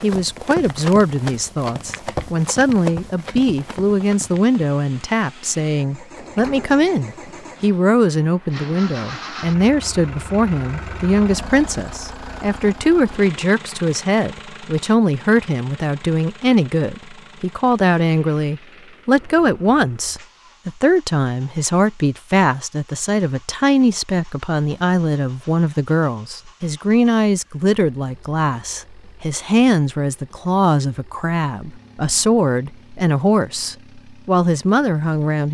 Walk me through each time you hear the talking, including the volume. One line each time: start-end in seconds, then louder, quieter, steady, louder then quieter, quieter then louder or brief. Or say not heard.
0.0-35.5 steady.